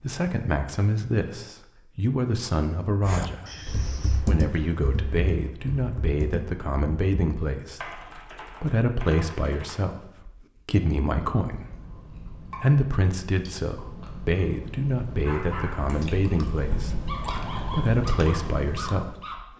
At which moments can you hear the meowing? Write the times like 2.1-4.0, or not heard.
3.5-4.2.